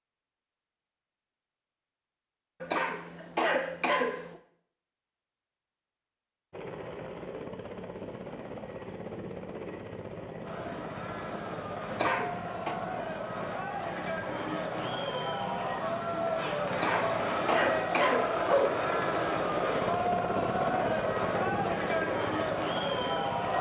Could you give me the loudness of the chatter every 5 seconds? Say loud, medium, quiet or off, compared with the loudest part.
off, off, medium, loud, loud.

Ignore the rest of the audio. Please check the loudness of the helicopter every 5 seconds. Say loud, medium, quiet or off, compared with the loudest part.
off, medium, medium, loud, loud.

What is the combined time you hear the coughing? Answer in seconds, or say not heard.
5 s.